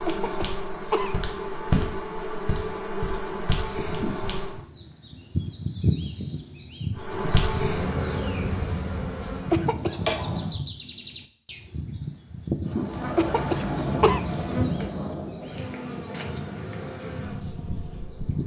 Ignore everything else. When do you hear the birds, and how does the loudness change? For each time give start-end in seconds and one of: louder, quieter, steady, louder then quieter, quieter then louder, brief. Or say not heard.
3.6-18.4 quieter.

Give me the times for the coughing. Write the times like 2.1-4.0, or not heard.
0.1-1.3, 9.5-10.0, 13.2-14.2.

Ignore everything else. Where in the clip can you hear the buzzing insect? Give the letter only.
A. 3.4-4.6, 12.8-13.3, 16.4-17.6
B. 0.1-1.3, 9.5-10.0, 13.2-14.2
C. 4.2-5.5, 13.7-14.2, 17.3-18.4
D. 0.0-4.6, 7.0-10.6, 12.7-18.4
D.